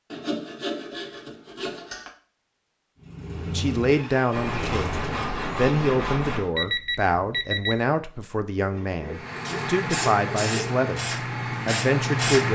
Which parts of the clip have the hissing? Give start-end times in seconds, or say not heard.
9.1-12.4.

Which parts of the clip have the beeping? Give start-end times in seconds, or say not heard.
6.5-7.8.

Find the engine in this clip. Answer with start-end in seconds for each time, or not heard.
3.0-5.2.